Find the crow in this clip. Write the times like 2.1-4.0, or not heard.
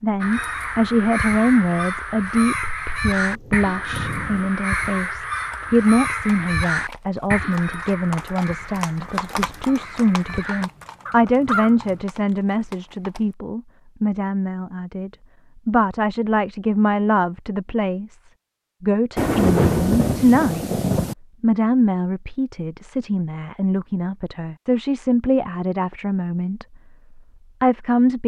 0.2-12.0.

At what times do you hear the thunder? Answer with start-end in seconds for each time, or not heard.
3.0-4.5, 19.1-21.1.